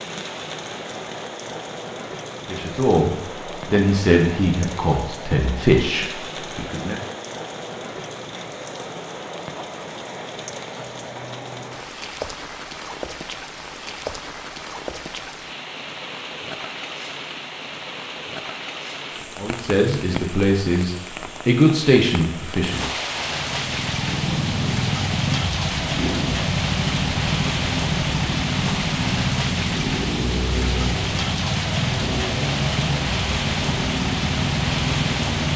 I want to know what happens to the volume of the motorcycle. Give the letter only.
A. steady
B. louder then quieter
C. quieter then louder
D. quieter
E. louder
A.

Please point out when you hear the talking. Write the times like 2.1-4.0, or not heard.
2.5-7.0, 19.4-22.9.